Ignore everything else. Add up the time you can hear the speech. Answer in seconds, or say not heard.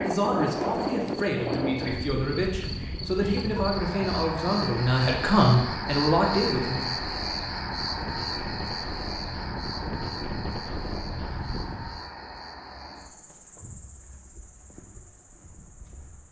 7 s.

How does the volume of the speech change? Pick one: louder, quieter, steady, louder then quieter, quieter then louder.
louder.